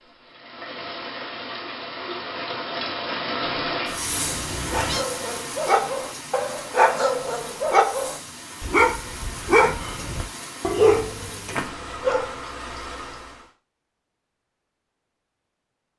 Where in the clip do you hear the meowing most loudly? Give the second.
5 s.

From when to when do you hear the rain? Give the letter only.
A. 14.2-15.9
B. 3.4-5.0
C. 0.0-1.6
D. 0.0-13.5
D.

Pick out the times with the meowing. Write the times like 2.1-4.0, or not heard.
3.4-5.0.